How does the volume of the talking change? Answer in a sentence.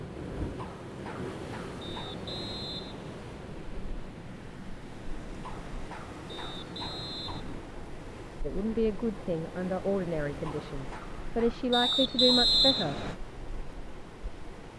The loudness of the talking goes down, then up.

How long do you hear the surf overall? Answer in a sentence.
You can hear the surf for 15 seconds altogether.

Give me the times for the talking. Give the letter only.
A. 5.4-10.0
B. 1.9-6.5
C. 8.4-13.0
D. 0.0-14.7
C.